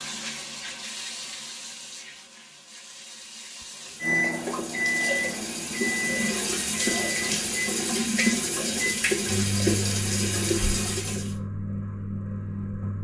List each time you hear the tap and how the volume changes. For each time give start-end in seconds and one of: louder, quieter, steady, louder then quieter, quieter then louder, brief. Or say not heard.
0.0-11.3 louder.